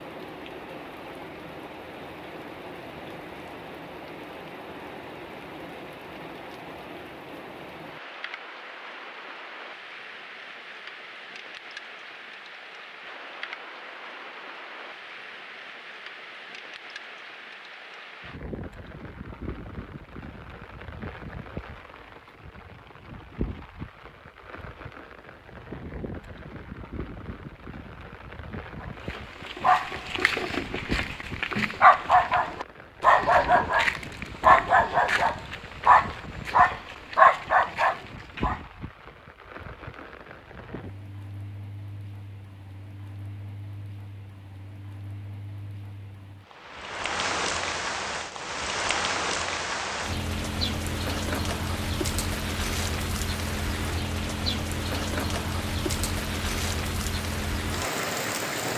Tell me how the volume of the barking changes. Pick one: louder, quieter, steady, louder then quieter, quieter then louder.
louder.